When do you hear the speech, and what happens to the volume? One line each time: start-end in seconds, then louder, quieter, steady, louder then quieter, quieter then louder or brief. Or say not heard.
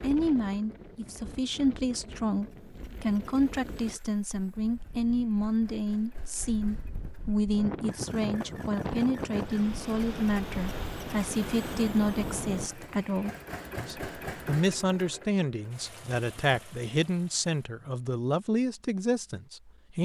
0.0-20.0 steady.